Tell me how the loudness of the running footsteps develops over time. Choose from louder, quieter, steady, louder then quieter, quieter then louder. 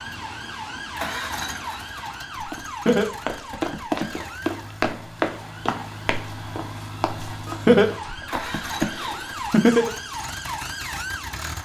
quieter.